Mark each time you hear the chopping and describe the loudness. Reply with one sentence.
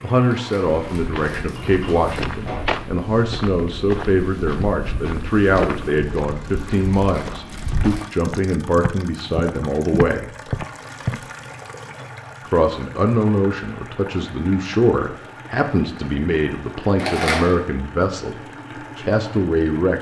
The chopping can't be heard in this clip.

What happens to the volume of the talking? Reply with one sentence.
The loudness of the talking stays about the same.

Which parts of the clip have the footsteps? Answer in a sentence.
The footsteps can be heard from 0.7 to 11.2 s.